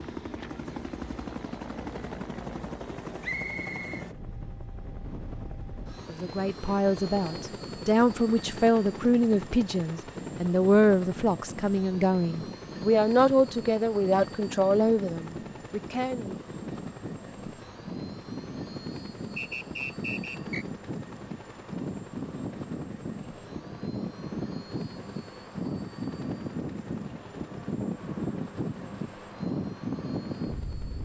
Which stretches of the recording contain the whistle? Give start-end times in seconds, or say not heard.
3.2-4.0, 19.4-20.6.